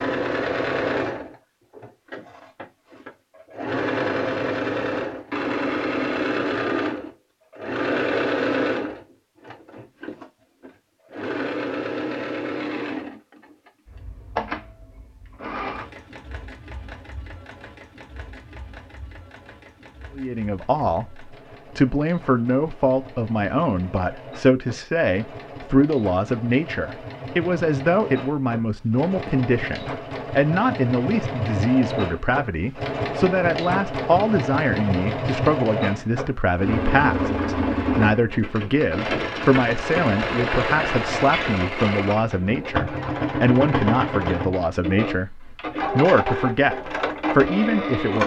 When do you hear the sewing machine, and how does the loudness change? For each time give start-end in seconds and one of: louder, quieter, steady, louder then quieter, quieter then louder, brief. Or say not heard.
0.0-48.2 quieter then louder.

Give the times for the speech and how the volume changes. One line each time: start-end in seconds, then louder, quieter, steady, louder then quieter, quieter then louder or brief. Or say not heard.
20.1-48.2 steady.